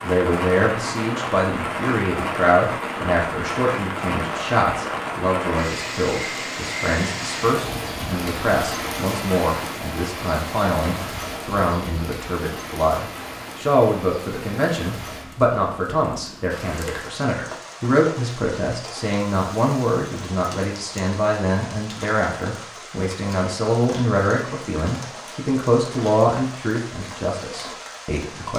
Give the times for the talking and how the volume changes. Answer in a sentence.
The talking can be heard from 0.0 to 28.5 s, at a steady volume.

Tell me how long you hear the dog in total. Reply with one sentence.
You can't hear the dog here.